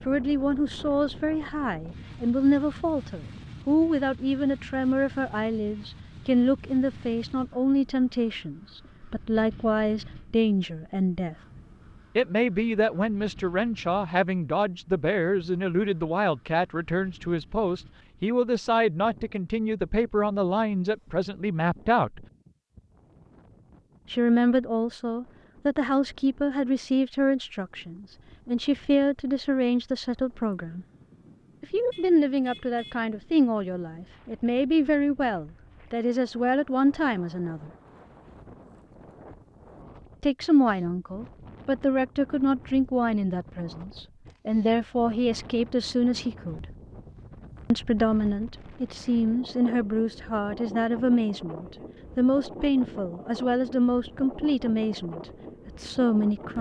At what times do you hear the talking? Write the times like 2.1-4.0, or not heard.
0.1-11.3, 12.2-22.2, 24.1-30.9, 31.6-37.7, 40.2-46.6, 47.7-56.5.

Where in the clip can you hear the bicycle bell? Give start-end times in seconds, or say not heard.
not heard.